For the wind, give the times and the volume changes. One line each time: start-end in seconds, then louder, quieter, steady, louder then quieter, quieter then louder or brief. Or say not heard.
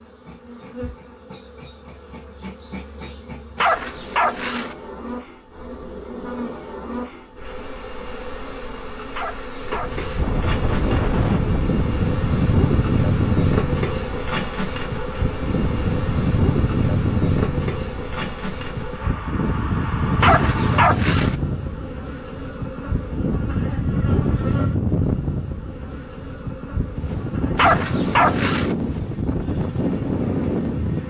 9.7-31.0 steady.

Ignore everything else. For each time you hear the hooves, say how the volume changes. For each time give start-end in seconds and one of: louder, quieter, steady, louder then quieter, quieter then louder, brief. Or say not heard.
not heard.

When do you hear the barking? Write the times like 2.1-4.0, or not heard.
3.5-4.8, 9.2-10.3, 20.2-21.4, 27.6-28.8.